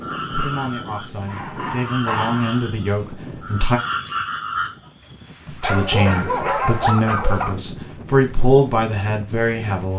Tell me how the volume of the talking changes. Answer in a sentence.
The volume of the talking goes up.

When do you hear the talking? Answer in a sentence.
You can hear the talking from 0.3 to 3.8 s and from 5.5 to 9.9 s.